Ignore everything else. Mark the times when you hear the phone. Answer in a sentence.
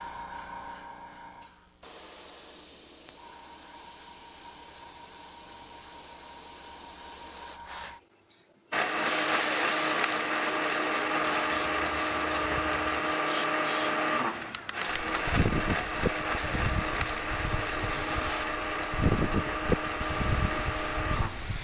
The phone can't be heard in this clip.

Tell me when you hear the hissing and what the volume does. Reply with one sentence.
You can hear the hissing from 0.0 to 21.5 s, getting louder.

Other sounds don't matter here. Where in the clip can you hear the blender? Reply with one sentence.
The blender can be heard from 8.7 to 21.5 s.